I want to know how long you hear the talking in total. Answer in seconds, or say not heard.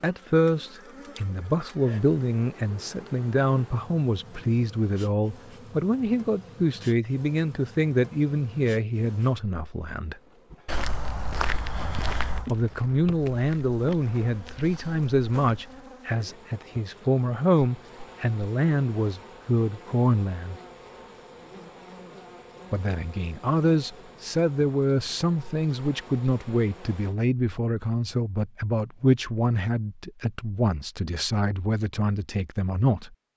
29 s.